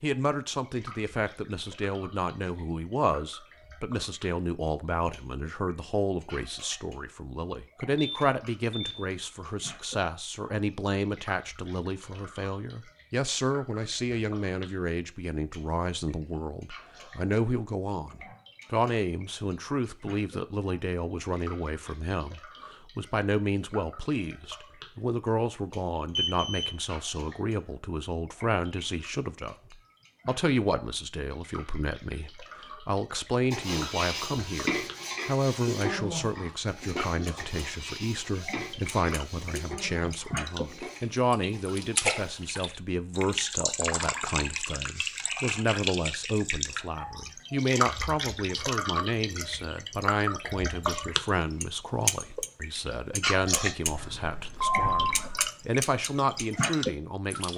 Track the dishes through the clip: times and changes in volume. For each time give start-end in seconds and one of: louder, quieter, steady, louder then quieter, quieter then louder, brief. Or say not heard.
33.5-42.6 quieter.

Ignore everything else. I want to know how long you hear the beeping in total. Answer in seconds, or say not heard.
3 s.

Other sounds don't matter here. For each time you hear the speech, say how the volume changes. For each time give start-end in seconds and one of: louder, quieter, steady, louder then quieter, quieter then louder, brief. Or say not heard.
0.0-57.5 steady.